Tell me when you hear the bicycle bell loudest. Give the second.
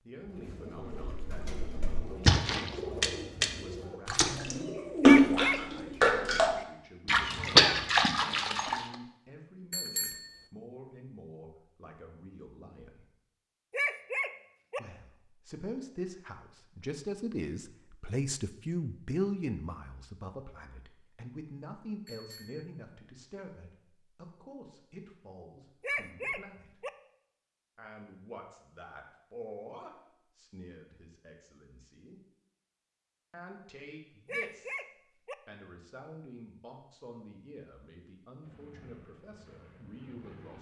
10 s.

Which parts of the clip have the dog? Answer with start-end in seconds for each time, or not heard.
5.0-6.1, 13.7-14.8, 25.8-26.9, 34.2-35.4.